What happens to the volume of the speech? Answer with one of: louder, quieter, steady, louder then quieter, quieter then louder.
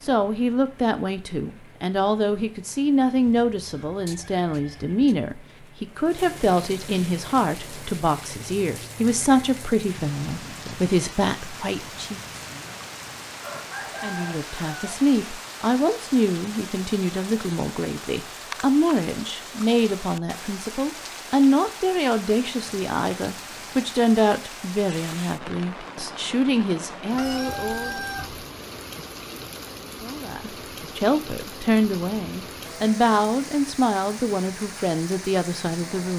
steady.